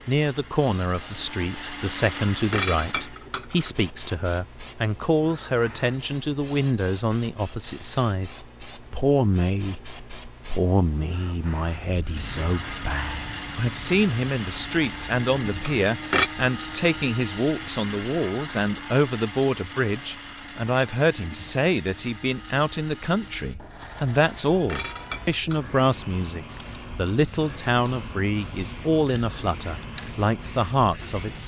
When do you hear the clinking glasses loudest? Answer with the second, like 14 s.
16 s.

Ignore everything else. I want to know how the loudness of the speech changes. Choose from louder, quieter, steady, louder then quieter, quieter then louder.
steady.